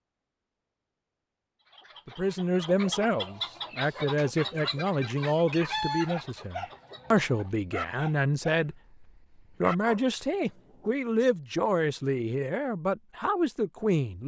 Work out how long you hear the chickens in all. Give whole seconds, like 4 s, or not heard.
6 s.